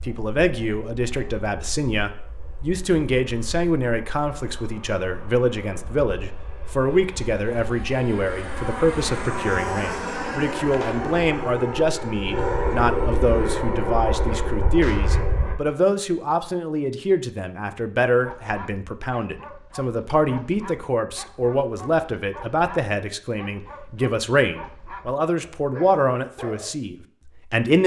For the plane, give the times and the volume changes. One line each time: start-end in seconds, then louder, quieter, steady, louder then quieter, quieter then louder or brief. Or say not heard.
0.0-15.6 louder.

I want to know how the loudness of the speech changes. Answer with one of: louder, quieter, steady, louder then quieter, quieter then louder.
steady.